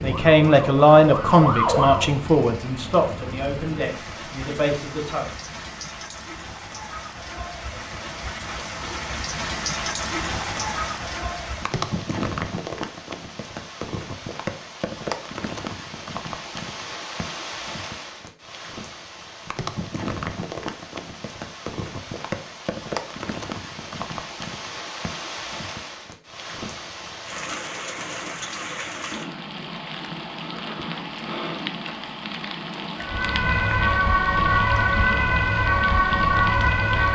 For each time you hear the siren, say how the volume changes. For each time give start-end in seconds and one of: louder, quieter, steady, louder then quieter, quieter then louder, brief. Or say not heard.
0.0-2.1 brief
33.0-37.1 steady.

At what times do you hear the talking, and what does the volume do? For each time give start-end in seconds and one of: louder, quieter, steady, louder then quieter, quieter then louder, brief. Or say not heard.
0.0-5.3 quieter.